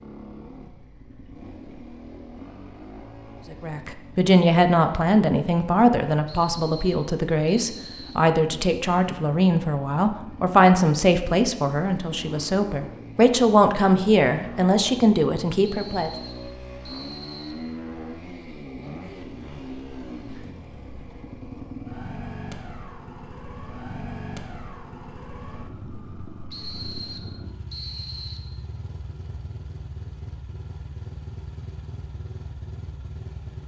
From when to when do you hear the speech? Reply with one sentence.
The speech can be heard from 3.5 to 16.1 s.